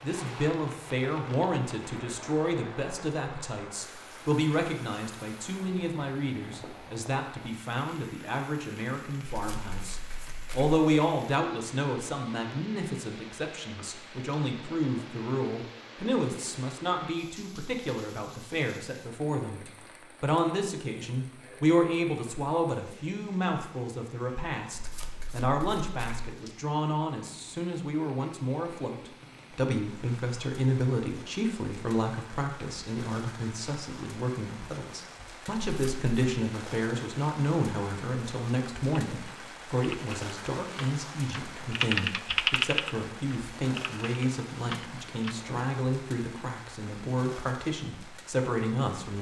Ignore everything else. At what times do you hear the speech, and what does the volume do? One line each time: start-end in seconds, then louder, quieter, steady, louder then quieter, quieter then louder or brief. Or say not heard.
0.0-49.1 steady.